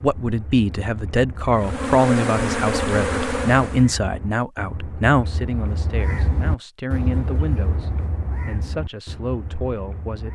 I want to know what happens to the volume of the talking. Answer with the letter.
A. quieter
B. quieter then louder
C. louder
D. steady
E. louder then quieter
A.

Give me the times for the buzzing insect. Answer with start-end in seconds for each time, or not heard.
1.5-3.9.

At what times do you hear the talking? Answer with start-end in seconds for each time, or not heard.
0.0-10.3.